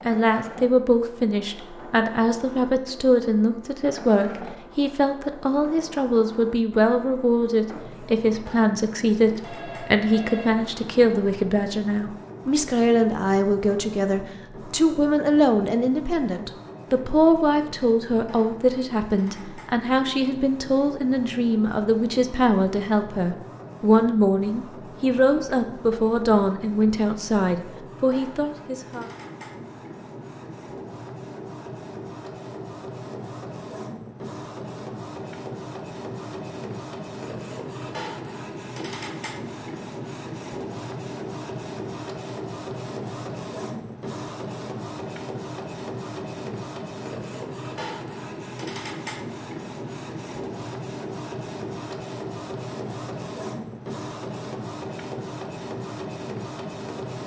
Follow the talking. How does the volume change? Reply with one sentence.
The loudness of the talking stays about the same.